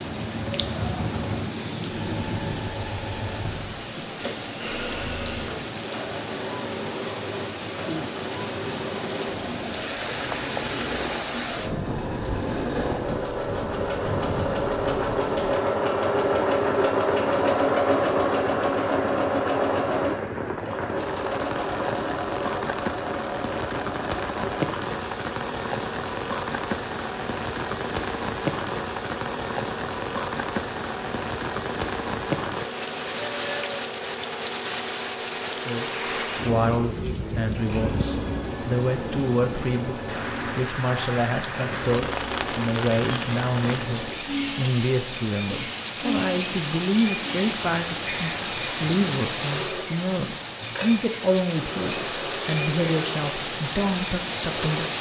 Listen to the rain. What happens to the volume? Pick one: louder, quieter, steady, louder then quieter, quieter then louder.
steady.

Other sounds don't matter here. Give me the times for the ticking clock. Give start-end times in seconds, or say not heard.
not heard.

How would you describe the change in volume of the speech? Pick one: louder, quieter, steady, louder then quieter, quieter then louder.
steady.